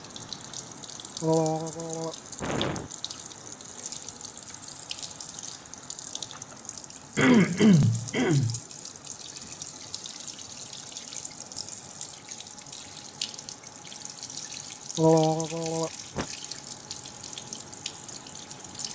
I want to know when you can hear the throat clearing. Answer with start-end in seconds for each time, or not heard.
1.2-2.9, 7.2-8.6, 14.9-16.2.